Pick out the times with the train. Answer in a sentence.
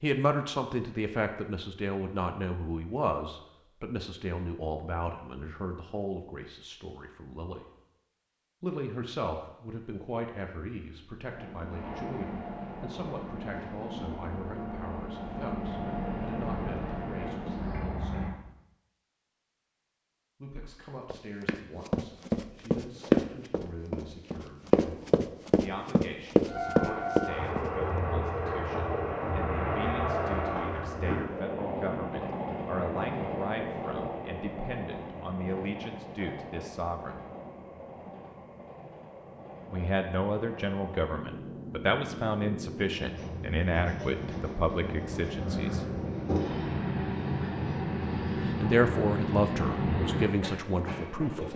The train can be heard from 11.2 to 18.4 s and from 26.4 to 51.5 s.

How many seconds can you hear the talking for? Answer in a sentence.
You can hear the talking for 43 seconds altogether.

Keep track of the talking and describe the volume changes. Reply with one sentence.
The loudness of the talking goes down, then up.